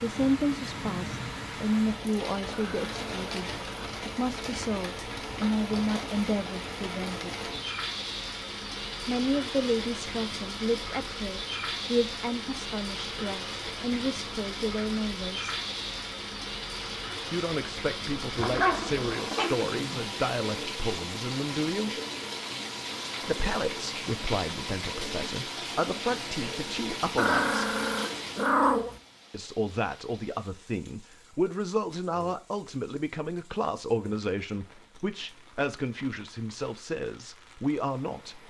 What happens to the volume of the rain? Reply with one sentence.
The loudness of the rain goes down.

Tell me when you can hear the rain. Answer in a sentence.
The rain can be heard from 0.0 to 38.4 s.